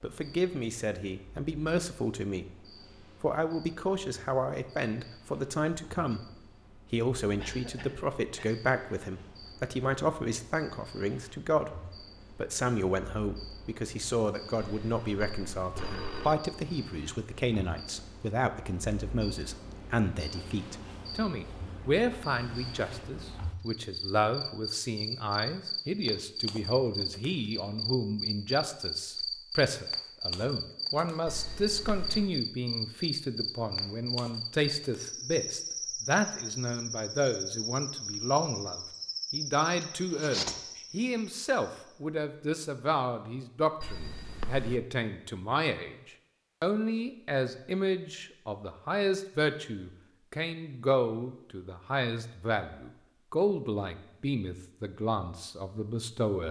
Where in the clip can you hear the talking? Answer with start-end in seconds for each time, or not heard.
0.0-2.5, 3.2-56.4.